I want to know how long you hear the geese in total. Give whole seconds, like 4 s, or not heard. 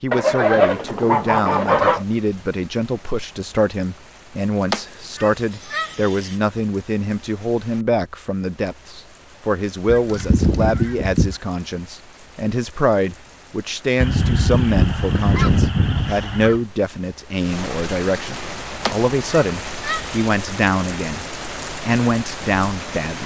9 s.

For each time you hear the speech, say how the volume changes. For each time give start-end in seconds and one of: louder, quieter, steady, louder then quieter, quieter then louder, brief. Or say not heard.
0.0-23.2 steady.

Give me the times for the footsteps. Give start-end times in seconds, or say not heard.
not heard.